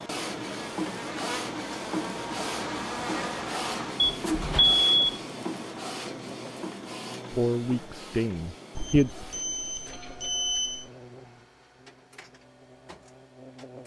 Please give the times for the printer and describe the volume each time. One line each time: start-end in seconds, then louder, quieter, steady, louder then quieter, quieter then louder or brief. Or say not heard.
0.0-13.8 quieter.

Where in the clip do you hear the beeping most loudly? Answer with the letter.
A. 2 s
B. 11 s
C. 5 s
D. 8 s
C.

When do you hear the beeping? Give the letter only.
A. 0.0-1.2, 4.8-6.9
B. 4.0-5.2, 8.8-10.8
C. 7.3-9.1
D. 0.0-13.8
B.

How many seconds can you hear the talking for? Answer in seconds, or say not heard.
2 s.